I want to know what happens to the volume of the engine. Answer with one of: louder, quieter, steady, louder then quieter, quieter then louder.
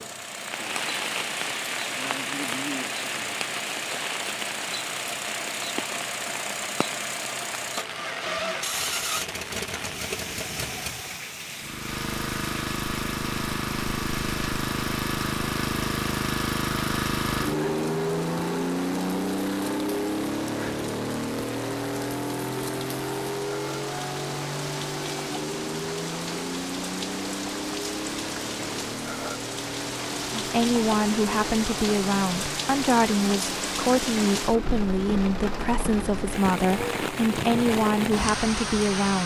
louder then quieter.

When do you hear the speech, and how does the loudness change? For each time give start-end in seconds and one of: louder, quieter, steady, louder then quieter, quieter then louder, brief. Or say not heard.
30.4-39.2 steady.